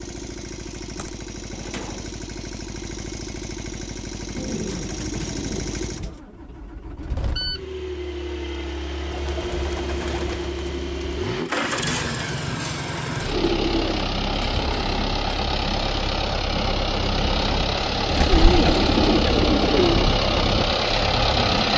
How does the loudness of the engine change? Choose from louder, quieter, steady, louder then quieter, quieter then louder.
louder.